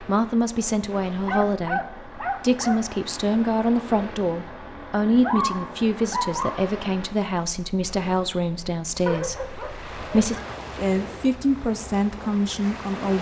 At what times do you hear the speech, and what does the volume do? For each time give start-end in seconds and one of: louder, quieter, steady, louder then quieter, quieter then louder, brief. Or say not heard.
0.0-13.1 steady.